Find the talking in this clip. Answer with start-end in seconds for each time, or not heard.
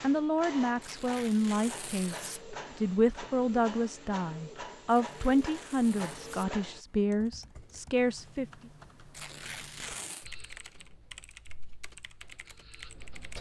0.0-8.4.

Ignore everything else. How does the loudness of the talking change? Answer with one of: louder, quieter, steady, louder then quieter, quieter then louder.
steady.